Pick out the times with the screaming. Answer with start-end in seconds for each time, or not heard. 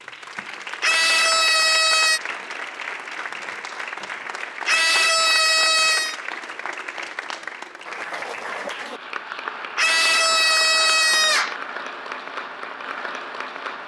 0.8-2.2, 4.7-6.2, 9.8-11.6.